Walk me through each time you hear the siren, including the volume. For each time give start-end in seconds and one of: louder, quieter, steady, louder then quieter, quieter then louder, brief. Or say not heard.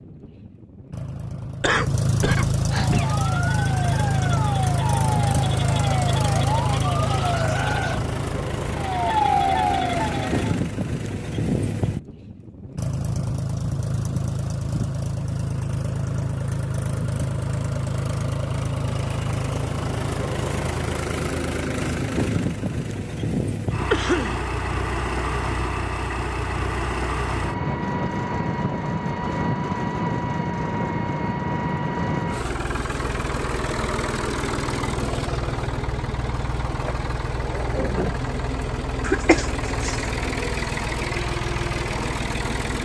2.7-10.6 louder.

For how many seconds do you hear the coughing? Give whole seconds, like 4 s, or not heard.
3 s.